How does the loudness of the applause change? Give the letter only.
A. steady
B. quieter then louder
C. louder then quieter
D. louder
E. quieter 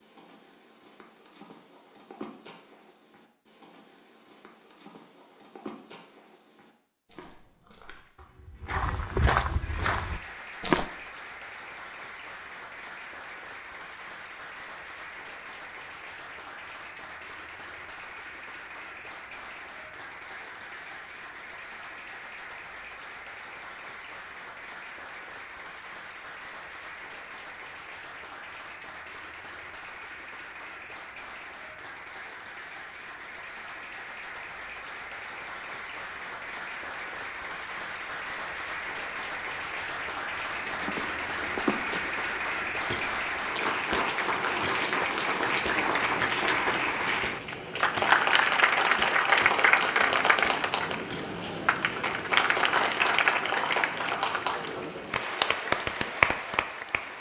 D.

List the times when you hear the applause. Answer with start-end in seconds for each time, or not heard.
9.6-57.1.